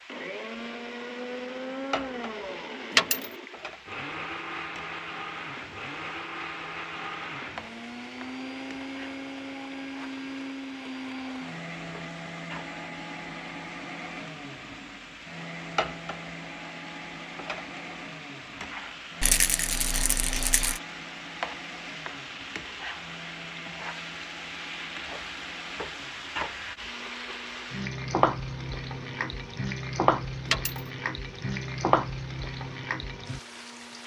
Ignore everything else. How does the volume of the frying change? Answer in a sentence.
The volume of the frying goes up.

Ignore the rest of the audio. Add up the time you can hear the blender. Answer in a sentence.
The blender can be heard for 34 seconds in total.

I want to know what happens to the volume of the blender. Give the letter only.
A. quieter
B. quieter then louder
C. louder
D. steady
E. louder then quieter
A.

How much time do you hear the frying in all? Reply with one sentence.
You can hear the frying for 34 seconds altogether.